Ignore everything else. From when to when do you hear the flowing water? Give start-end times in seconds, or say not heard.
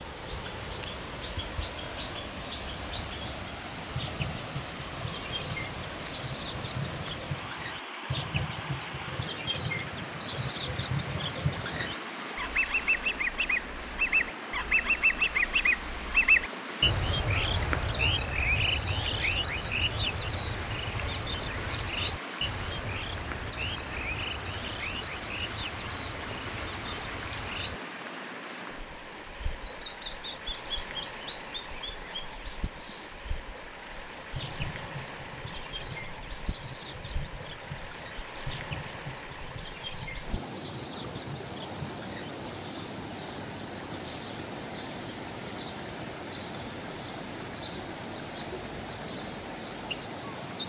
0.0-50.6.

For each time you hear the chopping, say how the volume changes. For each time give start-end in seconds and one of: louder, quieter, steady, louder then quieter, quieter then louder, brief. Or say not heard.
not heard.